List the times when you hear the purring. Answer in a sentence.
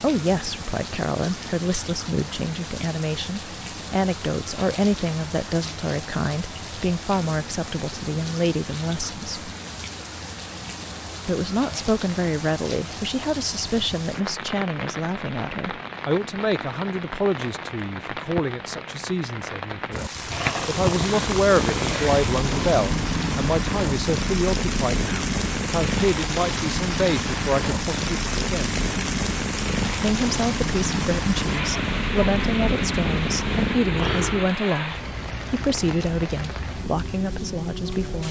The purring can be heard from 20.1 to 34.6 s.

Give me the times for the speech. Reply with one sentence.
The speech can be heard from 0.0 to 9.5 s, from 11.2 to 28.8 s and from 30.0 to 38.2 s.